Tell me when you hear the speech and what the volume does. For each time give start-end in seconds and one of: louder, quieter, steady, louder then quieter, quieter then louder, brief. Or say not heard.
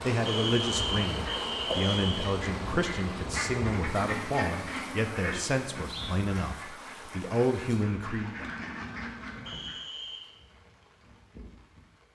0.0-8.4 steady.